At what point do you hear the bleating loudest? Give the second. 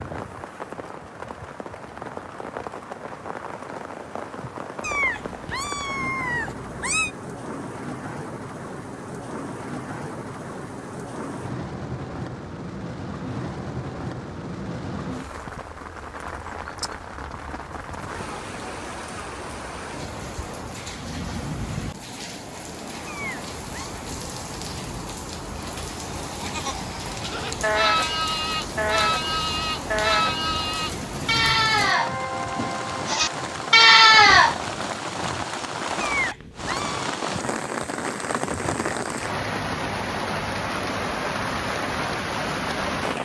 34 s.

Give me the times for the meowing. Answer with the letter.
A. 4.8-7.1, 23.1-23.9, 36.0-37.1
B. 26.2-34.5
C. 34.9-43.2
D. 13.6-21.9
A.